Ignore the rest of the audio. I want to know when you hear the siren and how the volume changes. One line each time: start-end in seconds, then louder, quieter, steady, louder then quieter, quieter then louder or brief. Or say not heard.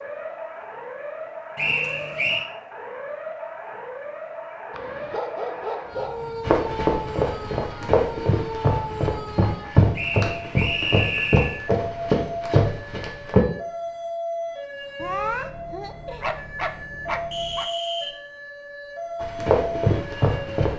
0.0-20.7 steady.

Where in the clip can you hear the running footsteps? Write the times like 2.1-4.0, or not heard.
6.4-13.4, 19.2-20.7.